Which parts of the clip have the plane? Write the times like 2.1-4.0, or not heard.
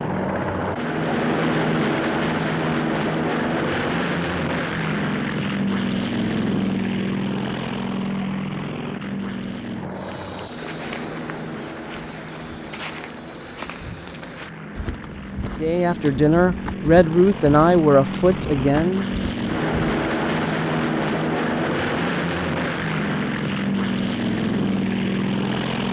0.0-25.8.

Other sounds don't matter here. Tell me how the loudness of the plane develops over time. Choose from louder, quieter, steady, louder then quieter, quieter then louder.
quieter then louder.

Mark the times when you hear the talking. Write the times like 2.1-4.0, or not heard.
15.6-19.1.